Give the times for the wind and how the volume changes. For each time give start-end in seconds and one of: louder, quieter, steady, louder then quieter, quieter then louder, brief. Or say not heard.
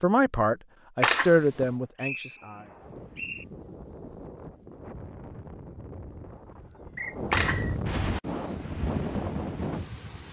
2.6-10.2 louder.